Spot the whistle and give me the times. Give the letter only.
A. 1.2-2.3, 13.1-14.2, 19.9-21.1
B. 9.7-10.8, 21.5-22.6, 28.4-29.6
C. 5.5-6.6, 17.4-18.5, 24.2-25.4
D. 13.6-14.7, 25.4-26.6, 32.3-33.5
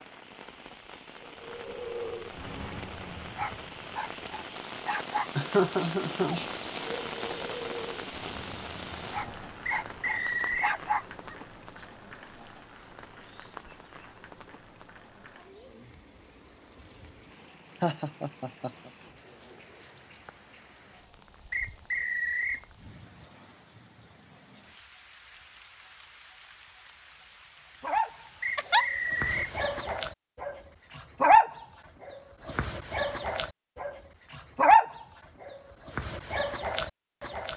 B.